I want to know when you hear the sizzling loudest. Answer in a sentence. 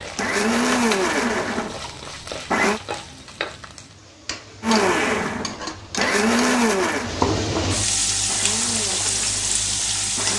The volume of the sizzling peaks at 8 seconds.